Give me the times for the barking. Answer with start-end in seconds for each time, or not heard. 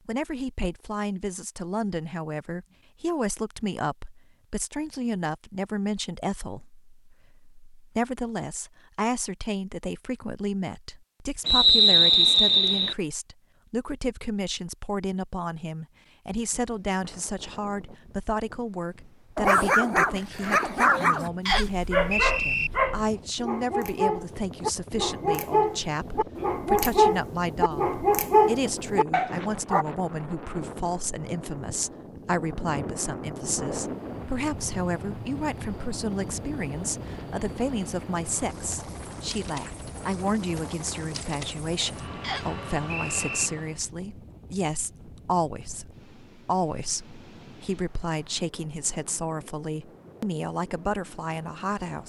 19.4-29.9.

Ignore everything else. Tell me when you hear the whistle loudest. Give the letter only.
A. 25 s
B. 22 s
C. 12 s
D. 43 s
C.